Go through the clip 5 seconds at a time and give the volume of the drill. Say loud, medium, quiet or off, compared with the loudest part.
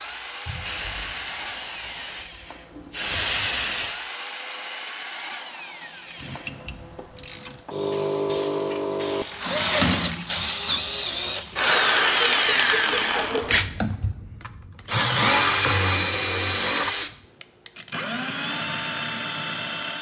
quiet, medium, loud, loud.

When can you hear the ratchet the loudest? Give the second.
10 s.